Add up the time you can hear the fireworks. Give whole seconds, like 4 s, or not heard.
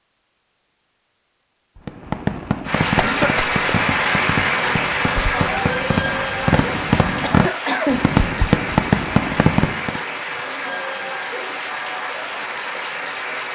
8 s.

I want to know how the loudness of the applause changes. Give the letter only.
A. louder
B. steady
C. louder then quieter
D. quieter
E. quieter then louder
D.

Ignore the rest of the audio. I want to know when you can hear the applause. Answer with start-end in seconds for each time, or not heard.
2.6-13.5.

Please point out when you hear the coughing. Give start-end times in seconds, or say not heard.
3.0-3.5, 7.2-8.1.